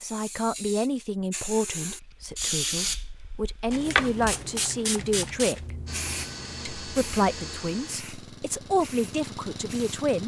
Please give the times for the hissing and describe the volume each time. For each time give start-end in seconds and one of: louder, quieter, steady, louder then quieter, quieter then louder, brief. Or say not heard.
0.0-10.1 louder then quieter.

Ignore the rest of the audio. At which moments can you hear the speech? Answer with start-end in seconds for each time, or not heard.
0.0-5.8, 6.8-10.2.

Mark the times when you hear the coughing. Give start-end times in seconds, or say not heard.
not heard.